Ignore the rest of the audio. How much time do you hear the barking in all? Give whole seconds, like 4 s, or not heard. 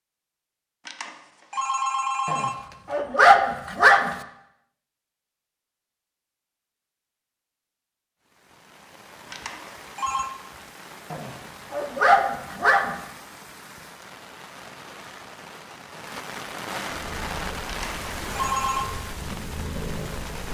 4 s.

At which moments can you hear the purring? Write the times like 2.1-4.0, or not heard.
16.9-20.4.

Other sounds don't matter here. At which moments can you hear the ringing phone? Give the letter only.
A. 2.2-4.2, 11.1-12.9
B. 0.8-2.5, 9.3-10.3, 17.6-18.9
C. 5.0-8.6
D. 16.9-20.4
B.